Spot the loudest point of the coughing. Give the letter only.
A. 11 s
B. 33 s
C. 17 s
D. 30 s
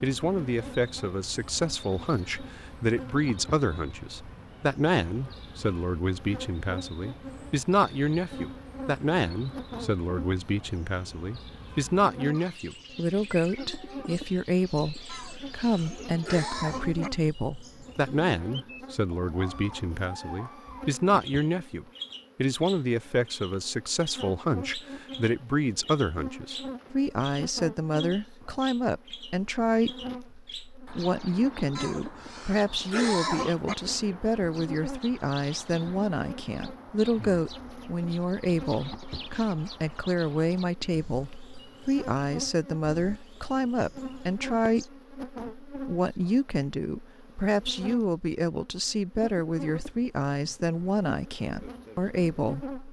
B.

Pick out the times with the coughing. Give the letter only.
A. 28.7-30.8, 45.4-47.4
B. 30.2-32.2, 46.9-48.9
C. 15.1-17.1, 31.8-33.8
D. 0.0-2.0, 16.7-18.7
C.